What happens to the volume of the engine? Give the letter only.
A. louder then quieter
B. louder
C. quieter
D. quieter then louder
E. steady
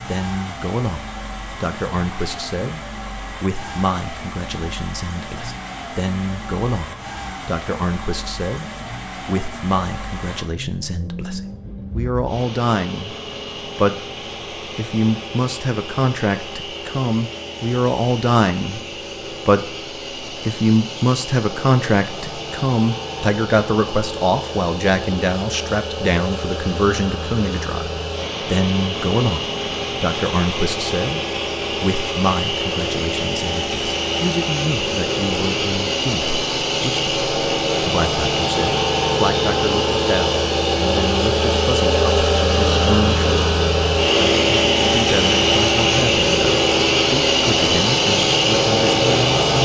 B.